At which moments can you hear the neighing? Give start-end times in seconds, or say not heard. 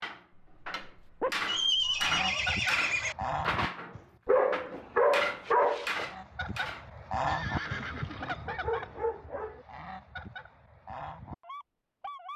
1.4-3.1, 7.2-8.5.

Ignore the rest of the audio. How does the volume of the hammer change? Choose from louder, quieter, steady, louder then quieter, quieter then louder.
steady.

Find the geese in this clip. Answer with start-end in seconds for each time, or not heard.
1.8-4.0, 6.0-12.3.